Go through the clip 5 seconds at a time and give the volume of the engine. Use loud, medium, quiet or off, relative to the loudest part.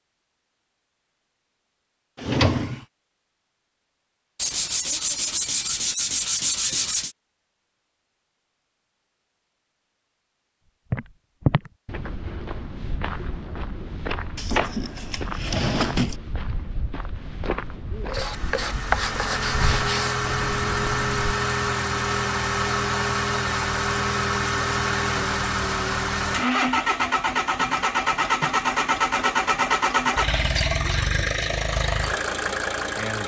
off, off, off, medium, loud, loud, loud.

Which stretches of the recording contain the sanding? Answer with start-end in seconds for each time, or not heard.
4.3-7.2, 18.1-20.1.